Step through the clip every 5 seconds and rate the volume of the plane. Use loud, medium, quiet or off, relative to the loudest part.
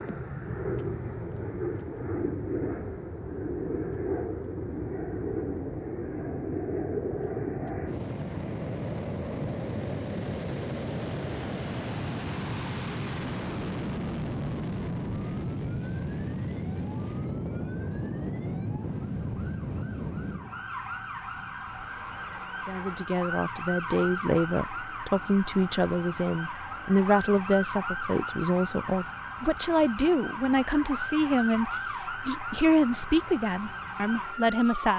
loud, loud, loud, loud, medium, quiet, quiet.